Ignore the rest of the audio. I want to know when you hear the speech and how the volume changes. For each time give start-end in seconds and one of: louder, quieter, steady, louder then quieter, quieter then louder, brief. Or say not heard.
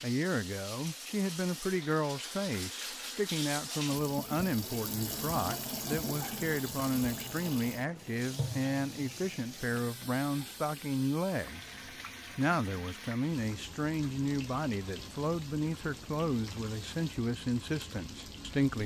0.0-11.8 steady
12.3-18.8 steady.